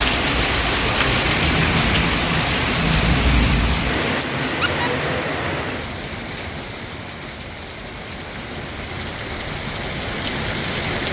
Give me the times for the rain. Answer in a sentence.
The rain can be heard from 0.0 to 11.0 s.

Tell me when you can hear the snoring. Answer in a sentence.
The snoring can't be heard in this clip.